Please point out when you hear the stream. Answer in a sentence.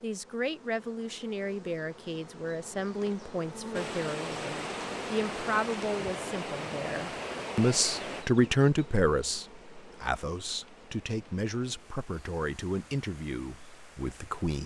The stream can be heard from 3.7 to 14.6 s.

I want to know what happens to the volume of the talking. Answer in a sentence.
The loudness of the talking goes up, then down.